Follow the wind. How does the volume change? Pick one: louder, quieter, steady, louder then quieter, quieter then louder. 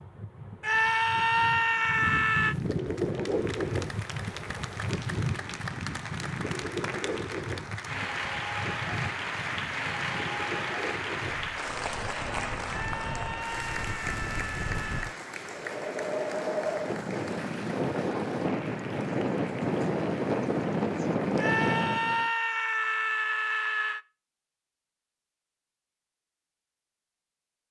quieter then louder.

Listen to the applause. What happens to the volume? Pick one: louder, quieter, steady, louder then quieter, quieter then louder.
louder then quieter.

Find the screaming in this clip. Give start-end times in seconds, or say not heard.
0.6-2.5, 12.7-15.2, 21.4-24.0.